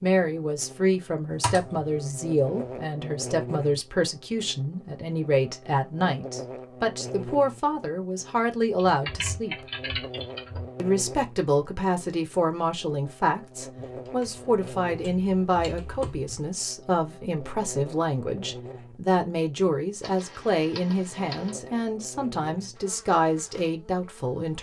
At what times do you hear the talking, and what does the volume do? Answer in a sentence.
You can hear the talking from 0.0 to 9.7 s, at a steady volume; and from 10.8 to 24.5 s, at a steady volume.